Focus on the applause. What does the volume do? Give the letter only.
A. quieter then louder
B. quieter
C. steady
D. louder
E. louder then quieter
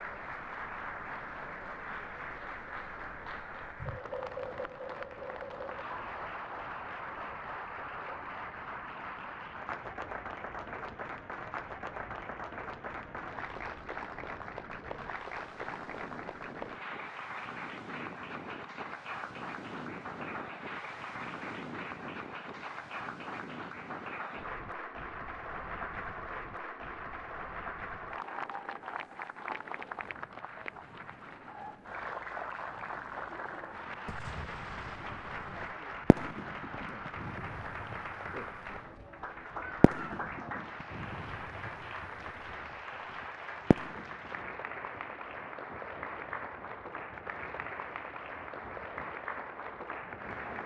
C.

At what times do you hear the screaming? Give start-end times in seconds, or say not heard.
not heard.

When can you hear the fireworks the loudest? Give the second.
44 s.